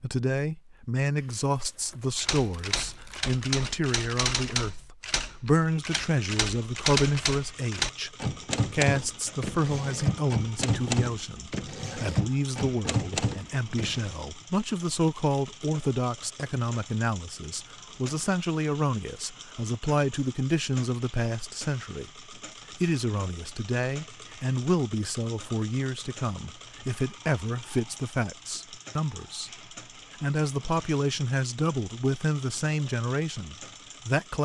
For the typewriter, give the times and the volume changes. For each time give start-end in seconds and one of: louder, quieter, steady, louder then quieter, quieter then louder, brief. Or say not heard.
2.1-14.2 steady.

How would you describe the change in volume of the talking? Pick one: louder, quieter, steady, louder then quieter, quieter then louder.
steady.